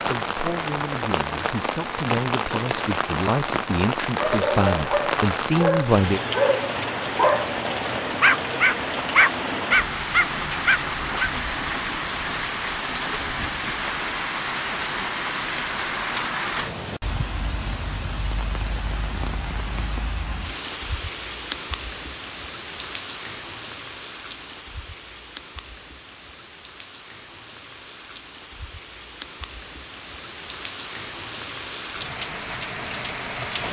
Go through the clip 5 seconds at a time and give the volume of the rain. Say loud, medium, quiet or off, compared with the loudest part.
loud, loud, loud, loud, medium, quiet, medium.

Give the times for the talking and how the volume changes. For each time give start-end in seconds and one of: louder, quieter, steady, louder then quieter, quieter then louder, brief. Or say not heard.
0.0-6.2 louder.